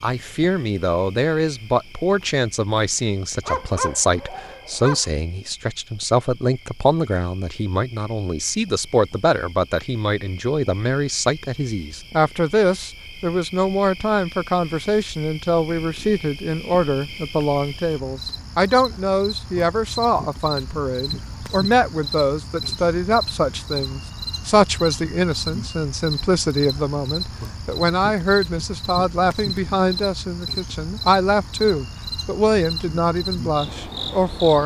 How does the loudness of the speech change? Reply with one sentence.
The loudness of the speech stays about the same.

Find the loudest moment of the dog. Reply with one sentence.
The loudest moment of the dog is at 4 seconds.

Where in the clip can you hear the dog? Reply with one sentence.
You can hear the dog from 3.5 to 5.0 s.